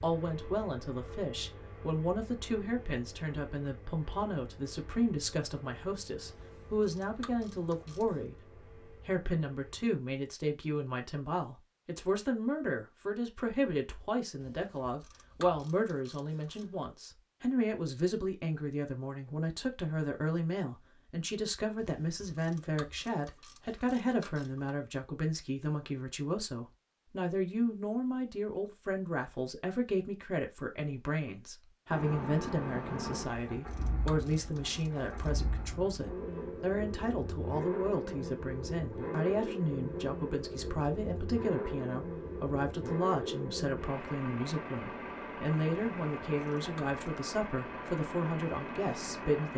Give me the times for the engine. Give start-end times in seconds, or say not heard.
0.0-9.9, 31.9-49.5.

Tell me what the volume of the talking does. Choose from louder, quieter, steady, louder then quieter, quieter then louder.
steady.